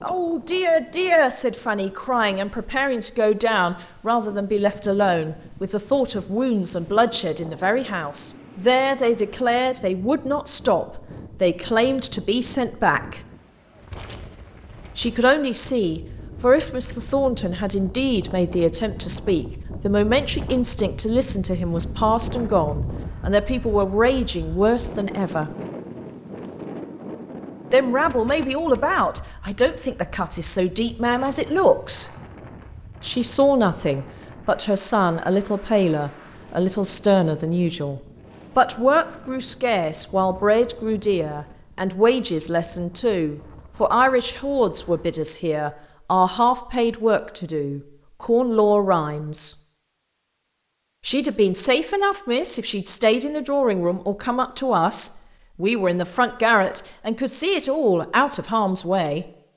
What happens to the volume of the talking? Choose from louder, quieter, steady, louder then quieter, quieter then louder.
steady.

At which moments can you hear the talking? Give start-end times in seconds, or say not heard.
0.0-13.2, 14.9-25.6, 27.7-32.1, 33.0-49.5, 51.0-59.2.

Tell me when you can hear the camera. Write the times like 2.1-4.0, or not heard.
not heard.